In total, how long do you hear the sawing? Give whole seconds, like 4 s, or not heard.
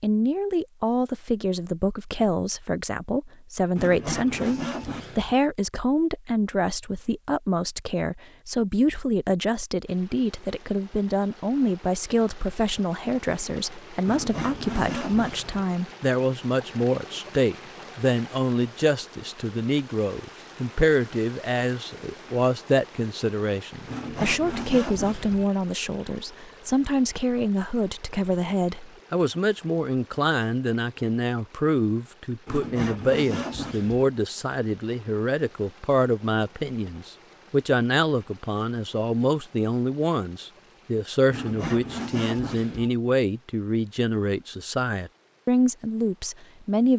8 s.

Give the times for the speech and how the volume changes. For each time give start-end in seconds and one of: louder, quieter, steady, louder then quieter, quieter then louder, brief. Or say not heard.
0.0-46.9 steady.